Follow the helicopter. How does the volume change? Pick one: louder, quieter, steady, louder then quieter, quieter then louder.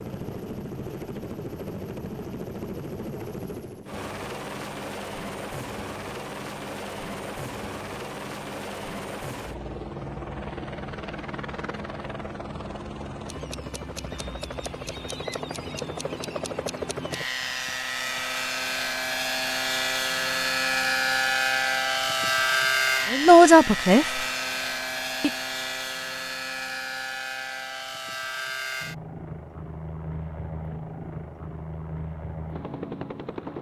louder then quieter.